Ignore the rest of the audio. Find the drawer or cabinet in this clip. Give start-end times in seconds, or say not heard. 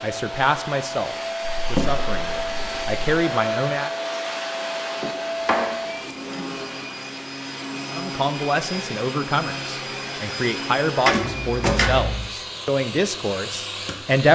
1.4-3.0, 5.0-6.7, 11.1-12.3.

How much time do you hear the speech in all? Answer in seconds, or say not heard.
10 s.